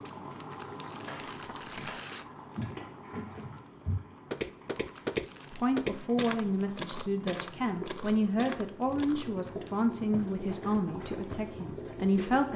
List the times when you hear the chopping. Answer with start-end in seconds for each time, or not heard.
1.1-2.6.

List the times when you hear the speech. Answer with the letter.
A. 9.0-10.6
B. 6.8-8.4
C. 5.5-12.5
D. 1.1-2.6
C.